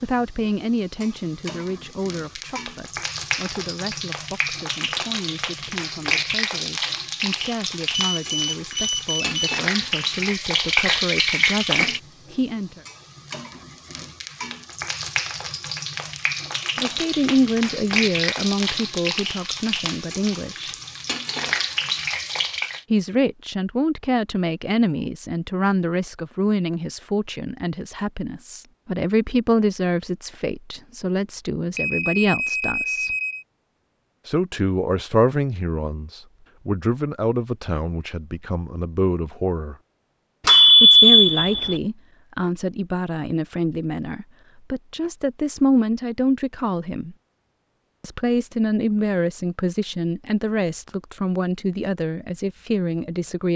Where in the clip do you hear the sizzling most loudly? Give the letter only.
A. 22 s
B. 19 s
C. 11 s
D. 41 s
C.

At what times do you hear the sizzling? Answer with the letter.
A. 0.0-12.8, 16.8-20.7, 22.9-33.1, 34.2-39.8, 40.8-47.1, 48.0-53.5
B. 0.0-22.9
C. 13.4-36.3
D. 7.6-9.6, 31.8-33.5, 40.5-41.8
B.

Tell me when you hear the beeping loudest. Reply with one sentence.
The volume of the beeping peaks at 41 seconds.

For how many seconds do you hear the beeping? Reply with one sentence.
The beeping can be heard for 5 seconds in total.